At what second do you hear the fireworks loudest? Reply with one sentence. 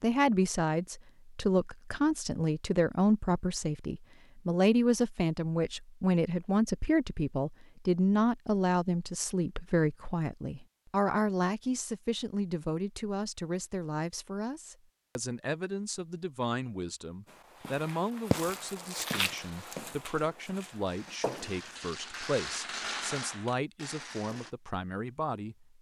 The volume of the fireworks peaks at 23 seconds.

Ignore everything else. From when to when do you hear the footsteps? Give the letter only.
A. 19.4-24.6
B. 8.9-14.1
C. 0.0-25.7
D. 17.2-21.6
D.